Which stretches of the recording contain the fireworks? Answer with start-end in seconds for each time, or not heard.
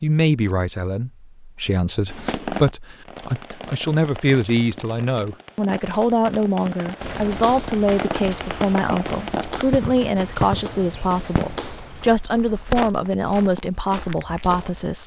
2.0-12.8.